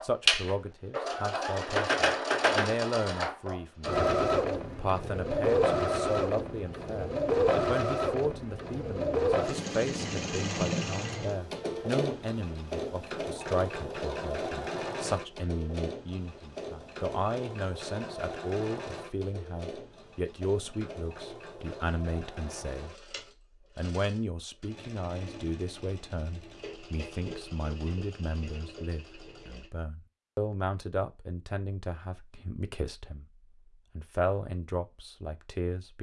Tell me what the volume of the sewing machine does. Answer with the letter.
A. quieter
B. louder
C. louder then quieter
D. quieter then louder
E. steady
A.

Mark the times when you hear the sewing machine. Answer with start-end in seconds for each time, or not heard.
0.0-29.7.